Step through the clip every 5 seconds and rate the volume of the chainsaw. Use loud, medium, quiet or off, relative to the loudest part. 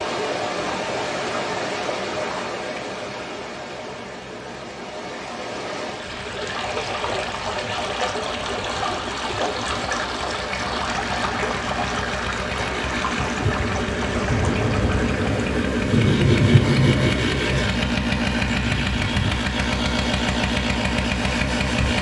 quiet, quiet, medium, loud, loud.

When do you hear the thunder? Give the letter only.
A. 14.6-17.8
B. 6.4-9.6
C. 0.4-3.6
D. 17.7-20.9
A.